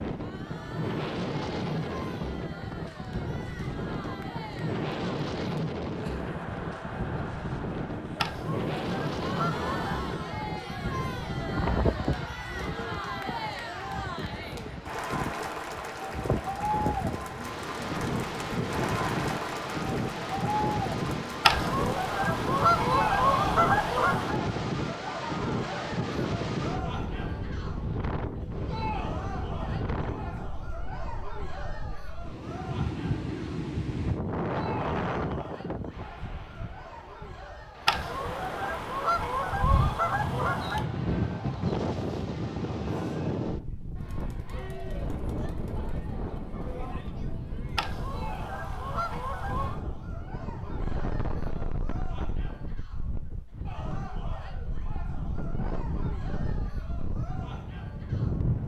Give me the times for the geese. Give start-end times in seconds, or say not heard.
8.2-10.1, 21.4-24.4, 37.9-40.9, 47.8-49.8.